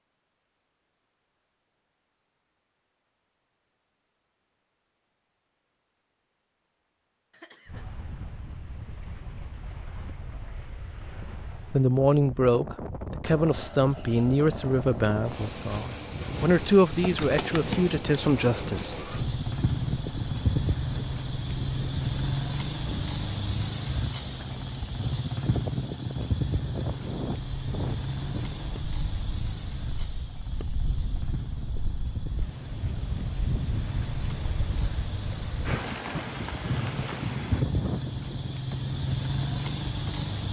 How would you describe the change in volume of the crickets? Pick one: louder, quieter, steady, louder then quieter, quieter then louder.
quieter then louder.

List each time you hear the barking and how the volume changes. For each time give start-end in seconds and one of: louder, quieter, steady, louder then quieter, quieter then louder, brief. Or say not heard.
not heard.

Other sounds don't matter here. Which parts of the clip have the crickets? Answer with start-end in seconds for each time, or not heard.
13.3-40.4.